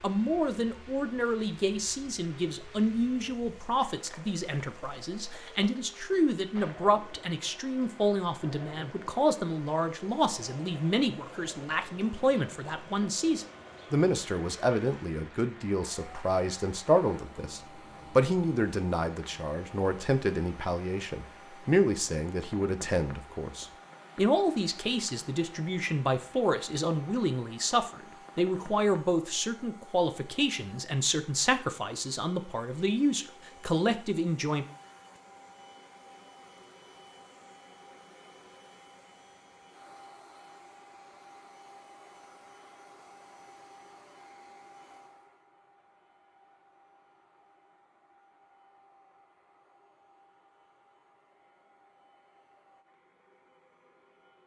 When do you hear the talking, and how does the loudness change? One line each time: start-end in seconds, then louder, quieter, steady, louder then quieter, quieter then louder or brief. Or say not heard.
0.0-34.6 steady.